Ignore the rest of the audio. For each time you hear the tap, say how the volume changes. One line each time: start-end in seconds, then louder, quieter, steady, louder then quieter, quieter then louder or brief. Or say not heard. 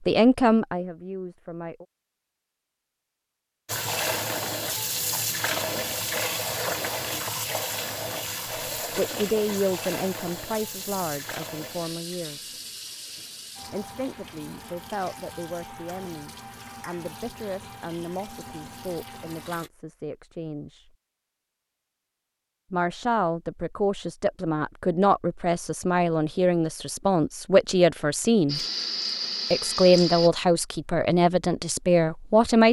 3.6-19.7 quieter
28.4-30.3 brief.